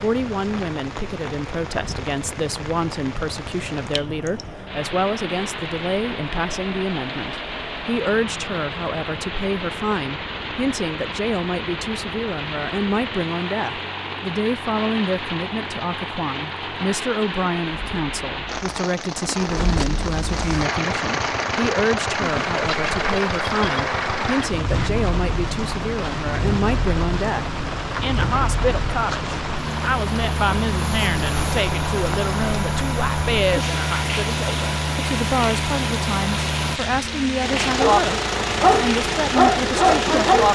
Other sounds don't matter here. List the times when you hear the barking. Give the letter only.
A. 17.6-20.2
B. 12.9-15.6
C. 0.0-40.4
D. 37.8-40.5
D.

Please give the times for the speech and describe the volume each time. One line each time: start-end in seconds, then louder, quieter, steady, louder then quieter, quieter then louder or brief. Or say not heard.
0.0-40.4 steady.